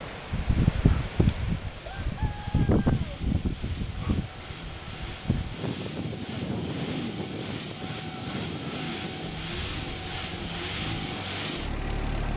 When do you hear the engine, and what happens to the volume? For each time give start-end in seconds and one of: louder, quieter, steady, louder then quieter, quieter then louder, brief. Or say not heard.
0.0-12.3 louder.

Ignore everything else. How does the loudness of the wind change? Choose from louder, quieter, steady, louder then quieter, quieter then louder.
quieter.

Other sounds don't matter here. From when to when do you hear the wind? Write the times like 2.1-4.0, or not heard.
0.0-12.3.